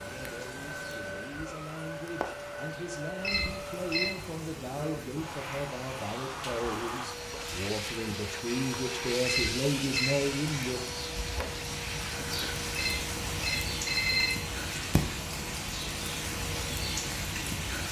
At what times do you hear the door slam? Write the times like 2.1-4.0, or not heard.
not heard.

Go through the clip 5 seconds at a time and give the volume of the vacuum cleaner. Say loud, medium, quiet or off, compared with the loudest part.
loud, loud, loud, medium.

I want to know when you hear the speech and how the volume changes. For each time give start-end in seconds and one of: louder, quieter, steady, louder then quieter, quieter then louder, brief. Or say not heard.
0.0-10.8 louder.